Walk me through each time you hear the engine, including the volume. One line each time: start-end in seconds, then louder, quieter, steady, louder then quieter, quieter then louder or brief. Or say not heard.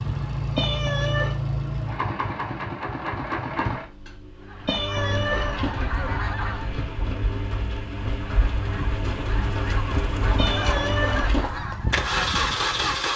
0.0-13.1 quieter then louder.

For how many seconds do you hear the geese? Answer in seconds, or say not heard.
7 s.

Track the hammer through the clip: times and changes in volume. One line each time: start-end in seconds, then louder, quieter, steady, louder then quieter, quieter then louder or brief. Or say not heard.
not heard.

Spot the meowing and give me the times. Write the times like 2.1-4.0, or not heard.
0.6-1.4, 4.7-5.7, 10.3-11.5.